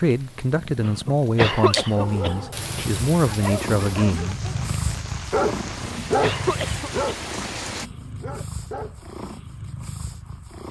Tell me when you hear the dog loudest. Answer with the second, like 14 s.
6 s.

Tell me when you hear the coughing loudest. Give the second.
2 s.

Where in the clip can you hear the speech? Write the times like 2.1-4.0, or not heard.
0.0-4.4.